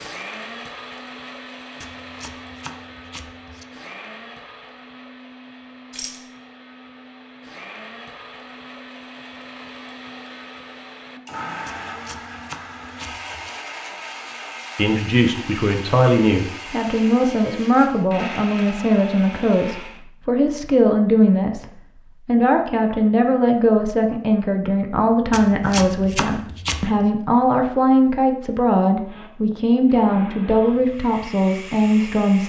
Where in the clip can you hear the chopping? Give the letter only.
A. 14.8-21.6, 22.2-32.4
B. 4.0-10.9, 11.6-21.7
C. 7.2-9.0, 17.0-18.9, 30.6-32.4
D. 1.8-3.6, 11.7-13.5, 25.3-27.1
D.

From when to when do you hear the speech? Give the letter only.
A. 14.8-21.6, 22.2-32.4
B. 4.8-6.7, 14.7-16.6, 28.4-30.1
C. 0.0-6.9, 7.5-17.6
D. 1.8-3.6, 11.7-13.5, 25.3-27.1
A.